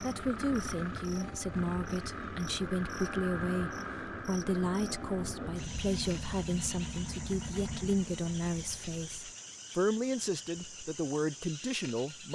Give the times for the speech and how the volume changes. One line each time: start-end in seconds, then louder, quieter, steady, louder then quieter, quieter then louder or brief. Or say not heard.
0.0-12.2 steady.